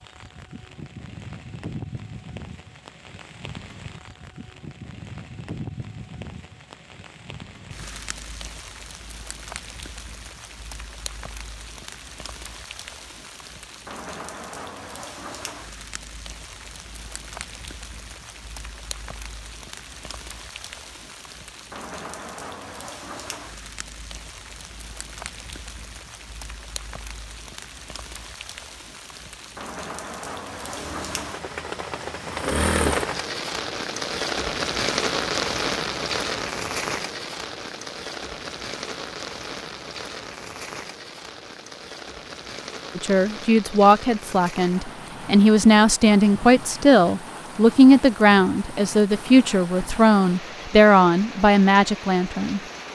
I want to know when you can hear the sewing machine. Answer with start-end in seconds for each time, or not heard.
30.6-33.0.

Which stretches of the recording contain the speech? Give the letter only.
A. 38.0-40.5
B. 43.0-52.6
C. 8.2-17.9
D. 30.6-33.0
B.